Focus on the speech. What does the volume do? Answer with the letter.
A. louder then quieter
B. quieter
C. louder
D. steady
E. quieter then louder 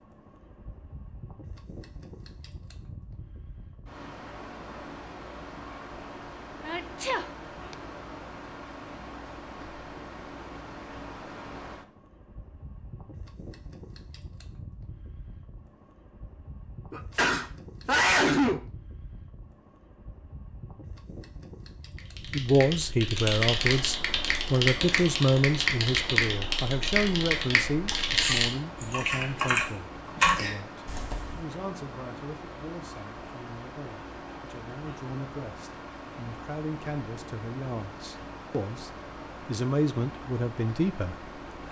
E.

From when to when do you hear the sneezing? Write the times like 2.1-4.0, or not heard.
6.7-7.8, 16.9-18.6, 27.9-28.6.